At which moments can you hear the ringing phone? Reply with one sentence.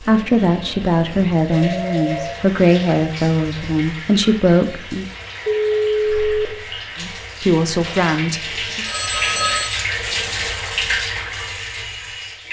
You can hear the ringing phone from 0.1 to 2.4 s, from 5.5 to 6.5 s and from 8.7 to 9.8 s.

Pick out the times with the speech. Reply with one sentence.
You can hear the speech from 0.0 to 5.0 s and from 7.0 to 8.8 s.